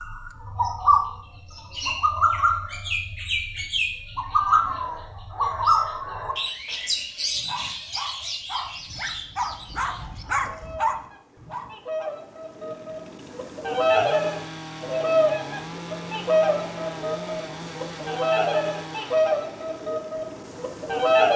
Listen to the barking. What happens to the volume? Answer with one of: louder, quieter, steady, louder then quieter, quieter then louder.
louder.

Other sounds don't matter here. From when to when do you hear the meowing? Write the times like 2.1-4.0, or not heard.
4.2-6.2.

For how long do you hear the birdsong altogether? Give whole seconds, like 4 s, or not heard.
21 s.